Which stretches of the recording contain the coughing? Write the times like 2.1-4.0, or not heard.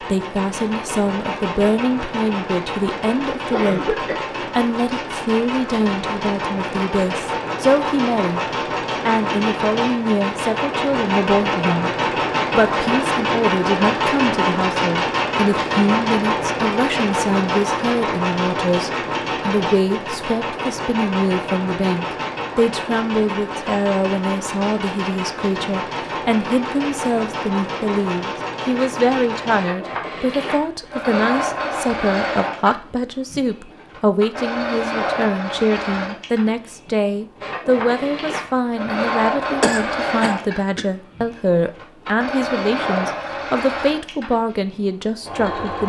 3.5-4.3, 39.6-40.9.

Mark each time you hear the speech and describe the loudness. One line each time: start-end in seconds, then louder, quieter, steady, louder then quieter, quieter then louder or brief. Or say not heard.
0.0-8.4 steady
9.1-11.9 brief
12.5-45.8 steady.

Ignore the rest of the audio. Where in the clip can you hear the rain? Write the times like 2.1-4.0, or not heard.
not heard.